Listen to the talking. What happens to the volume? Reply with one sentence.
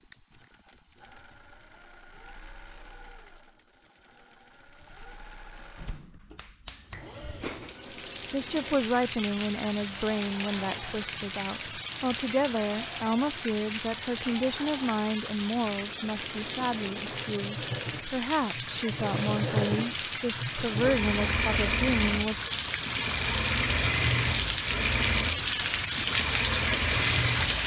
The loudness of the talking stays about the same.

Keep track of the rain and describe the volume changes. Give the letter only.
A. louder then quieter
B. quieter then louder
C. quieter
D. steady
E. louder
E.